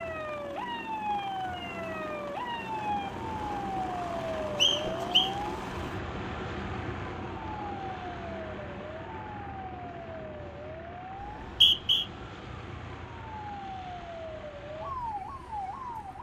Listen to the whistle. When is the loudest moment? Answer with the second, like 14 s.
12 s.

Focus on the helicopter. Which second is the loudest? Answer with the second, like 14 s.
5 s.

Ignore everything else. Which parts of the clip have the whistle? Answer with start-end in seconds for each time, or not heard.
4.5-5.3, 11.2-12.1.